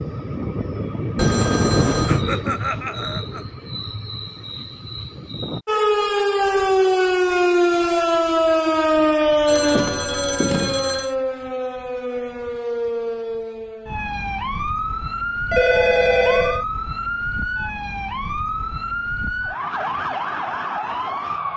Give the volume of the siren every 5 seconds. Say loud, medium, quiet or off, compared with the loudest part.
off, loud, medium, medium, medium.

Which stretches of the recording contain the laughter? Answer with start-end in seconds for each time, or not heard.
2.0-3.5.